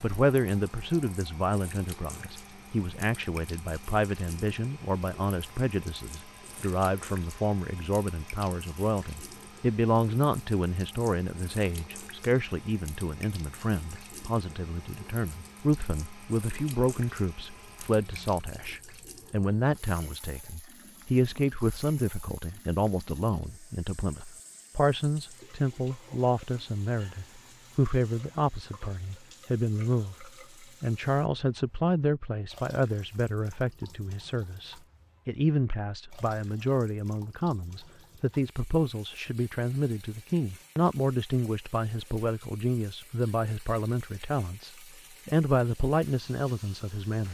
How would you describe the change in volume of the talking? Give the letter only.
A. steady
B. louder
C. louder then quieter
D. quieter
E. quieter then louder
A.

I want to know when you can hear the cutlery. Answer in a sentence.
You can't hear the cutlery here.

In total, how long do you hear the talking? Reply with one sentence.
The talking can be heard for 47 seconds in total.